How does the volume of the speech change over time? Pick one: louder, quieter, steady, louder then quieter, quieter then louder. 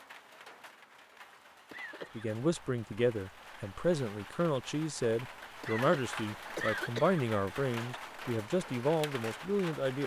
steady.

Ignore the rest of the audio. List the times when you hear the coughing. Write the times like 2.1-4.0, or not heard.
1.7-2.3, 5.6-7.2.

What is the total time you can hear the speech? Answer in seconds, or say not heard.
8 s.